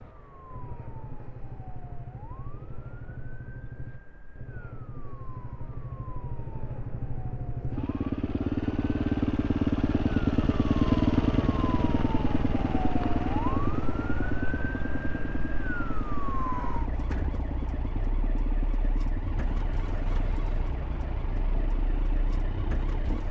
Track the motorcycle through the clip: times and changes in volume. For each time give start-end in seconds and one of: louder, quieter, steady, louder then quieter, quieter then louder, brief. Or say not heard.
0.0-23.2 louder then quieter.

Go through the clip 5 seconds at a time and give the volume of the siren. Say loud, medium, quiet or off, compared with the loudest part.
quiet, quiet, loud, loud, medium.